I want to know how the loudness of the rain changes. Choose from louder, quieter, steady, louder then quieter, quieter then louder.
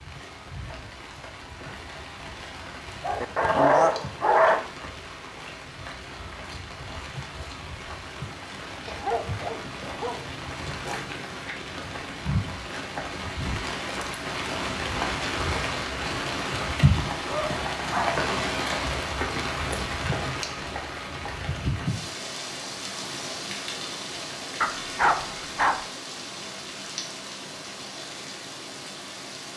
louder then quieter.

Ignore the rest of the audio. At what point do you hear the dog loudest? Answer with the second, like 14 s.
4 s.